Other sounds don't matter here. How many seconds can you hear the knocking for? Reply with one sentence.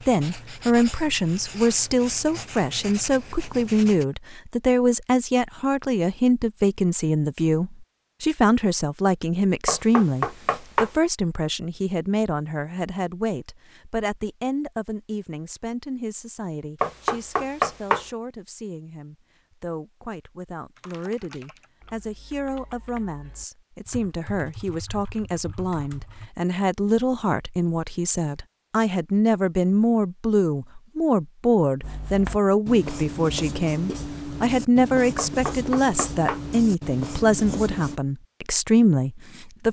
You can hear the knocking for 4 seconds altogether.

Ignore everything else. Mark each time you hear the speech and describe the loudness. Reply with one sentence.
You can hear the speech from 0.1 to 39.6 s, getting quieter then louder.